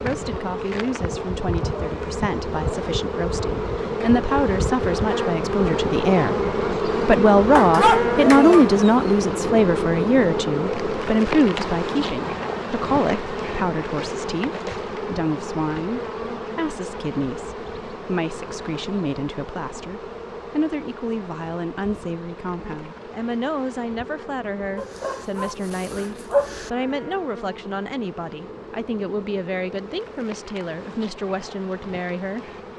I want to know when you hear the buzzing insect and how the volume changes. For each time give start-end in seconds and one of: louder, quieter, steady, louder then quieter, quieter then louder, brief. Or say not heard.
0.0-32.7 quieter.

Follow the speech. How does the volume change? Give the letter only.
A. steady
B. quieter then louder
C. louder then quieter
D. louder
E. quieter
C.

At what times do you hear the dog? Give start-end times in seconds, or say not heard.
7.5-9.1, 24.8-26.7.